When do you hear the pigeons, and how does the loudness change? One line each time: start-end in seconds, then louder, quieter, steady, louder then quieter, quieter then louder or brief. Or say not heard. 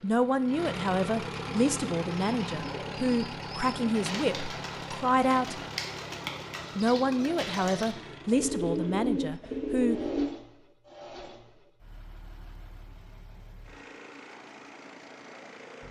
1.4-10.3 louder.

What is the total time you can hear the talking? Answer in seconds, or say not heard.
9 s.